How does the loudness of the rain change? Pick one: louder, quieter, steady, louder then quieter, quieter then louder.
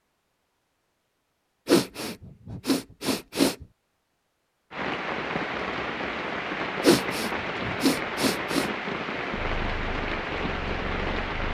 steady.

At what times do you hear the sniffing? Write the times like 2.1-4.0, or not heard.
1.6-3.6, 6.8-8.7.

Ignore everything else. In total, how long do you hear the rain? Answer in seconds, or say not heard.
7 s.